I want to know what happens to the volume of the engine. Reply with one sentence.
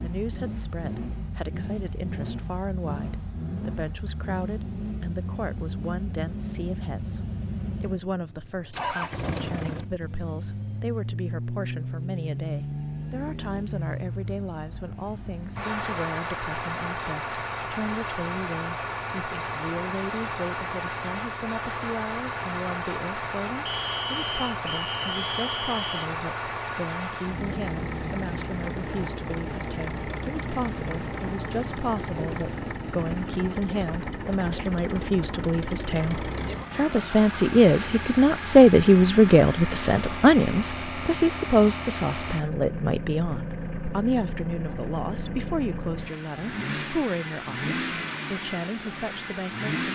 The volume of the engine stays about the same.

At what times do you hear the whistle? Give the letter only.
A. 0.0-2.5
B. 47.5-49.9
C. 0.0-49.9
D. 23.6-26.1
D.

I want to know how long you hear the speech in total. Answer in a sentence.
You can hear the speech for 50 seconds altogether.